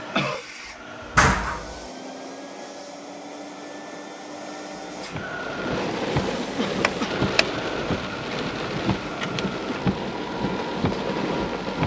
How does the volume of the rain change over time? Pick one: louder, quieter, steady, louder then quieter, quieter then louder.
steady.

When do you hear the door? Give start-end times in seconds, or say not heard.
1.1-1.8, 6.8-7.5.